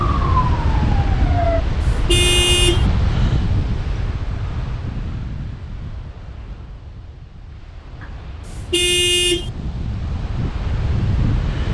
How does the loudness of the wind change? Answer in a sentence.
The loudness of the wind goes down, then up.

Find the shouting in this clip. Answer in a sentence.
The shouting can't be heard in this clip.